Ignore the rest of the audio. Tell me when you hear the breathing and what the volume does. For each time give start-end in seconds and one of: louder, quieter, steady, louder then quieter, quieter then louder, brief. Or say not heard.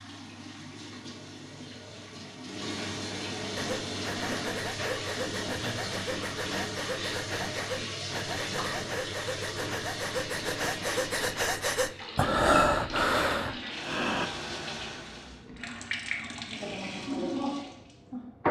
3.5-14.3 louder.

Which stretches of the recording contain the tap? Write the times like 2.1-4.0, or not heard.
0.0-18.4.